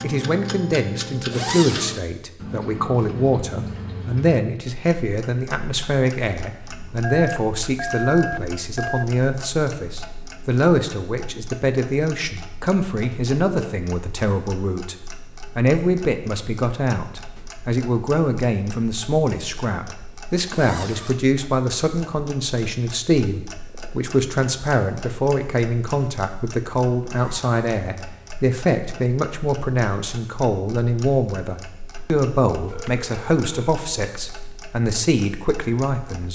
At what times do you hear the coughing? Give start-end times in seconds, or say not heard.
not heard.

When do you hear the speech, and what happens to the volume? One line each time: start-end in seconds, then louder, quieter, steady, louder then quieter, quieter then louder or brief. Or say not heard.
0.0-36.3 steady.